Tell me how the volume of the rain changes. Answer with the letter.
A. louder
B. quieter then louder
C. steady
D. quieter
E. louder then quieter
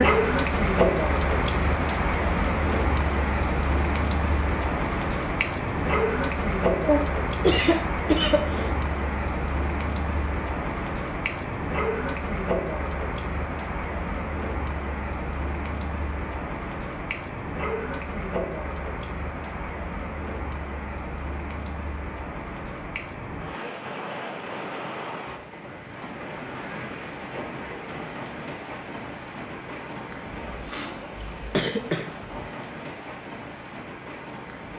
D.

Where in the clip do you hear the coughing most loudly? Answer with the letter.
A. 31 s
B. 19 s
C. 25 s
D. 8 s
D.